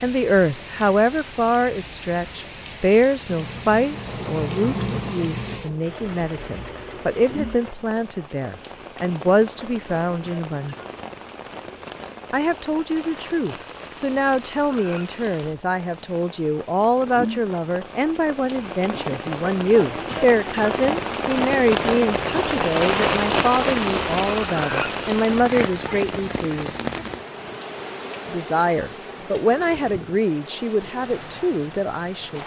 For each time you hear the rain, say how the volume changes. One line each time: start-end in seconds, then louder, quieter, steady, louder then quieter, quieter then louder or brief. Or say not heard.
0.0-32.4 louder then quieter.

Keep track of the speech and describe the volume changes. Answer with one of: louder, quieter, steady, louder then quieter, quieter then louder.
steady.